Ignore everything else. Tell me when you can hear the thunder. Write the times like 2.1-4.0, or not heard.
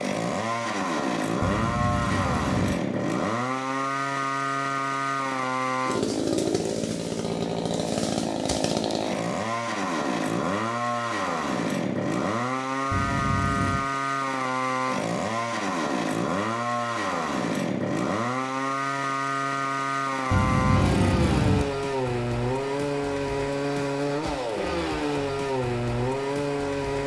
not heard.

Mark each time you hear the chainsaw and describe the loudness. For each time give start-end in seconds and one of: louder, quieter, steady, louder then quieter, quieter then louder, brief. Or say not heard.
0.0-27.0 steady.